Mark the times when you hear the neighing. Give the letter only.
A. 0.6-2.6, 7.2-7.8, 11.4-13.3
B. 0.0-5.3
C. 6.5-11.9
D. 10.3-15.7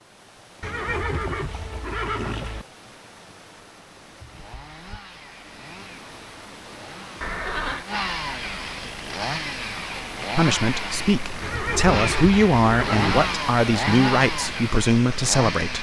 A.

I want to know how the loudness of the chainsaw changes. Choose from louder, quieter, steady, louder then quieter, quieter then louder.
louder.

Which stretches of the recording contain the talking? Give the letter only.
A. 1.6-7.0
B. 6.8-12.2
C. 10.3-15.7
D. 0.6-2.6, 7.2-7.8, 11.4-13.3
C.